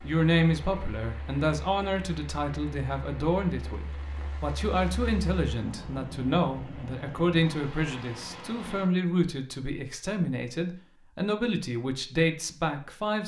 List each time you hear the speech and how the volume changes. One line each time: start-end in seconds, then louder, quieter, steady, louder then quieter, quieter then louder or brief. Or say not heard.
0.0-13.2 steady.